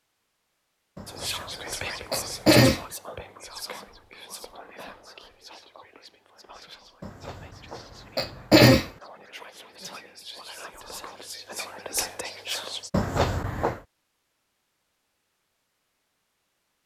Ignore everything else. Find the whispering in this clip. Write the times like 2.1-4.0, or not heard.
1.1-12.9.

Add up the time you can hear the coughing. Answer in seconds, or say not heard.
5 s.